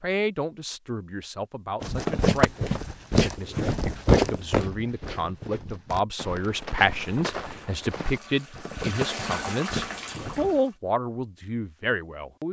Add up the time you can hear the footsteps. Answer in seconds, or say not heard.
9 s.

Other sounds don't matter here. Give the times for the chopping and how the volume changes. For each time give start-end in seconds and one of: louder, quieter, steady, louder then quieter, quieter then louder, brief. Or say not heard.
not heard.